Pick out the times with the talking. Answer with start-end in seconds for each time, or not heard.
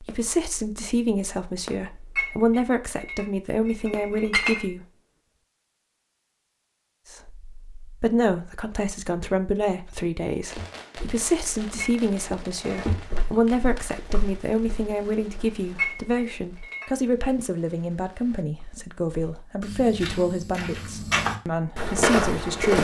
0.0-4.8, 7.1-22.8.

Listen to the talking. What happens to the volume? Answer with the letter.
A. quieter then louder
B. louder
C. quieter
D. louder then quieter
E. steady
E.